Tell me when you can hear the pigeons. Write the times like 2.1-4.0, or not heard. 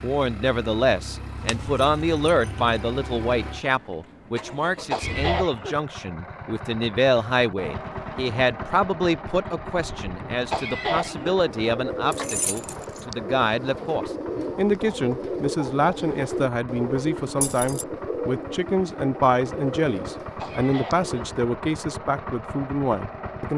11.1-21.4.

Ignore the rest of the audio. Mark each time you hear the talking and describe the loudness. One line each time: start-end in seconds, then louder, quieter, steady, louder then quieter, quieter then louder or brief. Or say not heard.
0.0-23.5 steady.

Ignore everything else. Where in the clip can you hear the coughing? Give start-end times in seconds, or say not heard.
4.9-5.8, 10.5-11.3, 20.4-21.1.